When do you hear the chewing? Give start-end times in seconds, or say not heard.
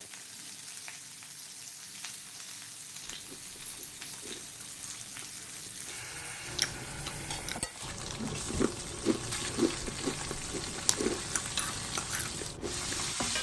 3.0-13.2.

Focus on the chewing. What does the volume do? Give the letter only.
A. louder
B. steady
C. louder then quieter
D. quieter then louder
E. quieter
A.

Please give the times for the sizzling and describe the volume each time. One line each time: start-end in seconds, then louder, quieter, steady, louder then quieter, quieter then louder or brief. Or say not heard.
0.0-13.3 louder.